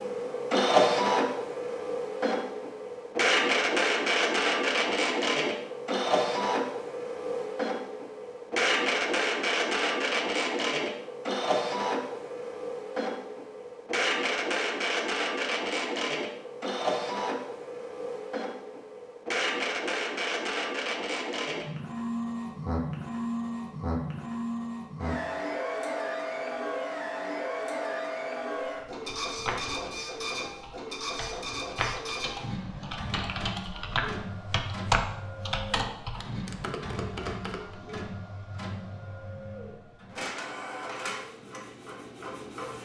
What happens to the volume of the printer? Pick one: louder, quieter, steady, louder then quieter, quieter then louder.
quieter.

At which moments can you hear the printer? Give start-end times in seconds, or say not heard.
0.0-42.8.